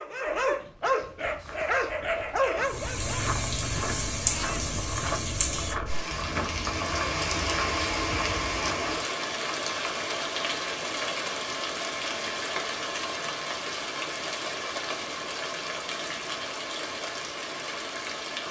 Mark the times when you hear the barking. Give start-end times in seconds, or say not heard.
0.0-3.2.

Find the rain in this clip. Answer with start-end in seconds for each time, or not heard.
2.6-18.4.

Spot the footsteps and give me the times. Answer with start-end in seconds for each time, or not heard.
1.2-8.8.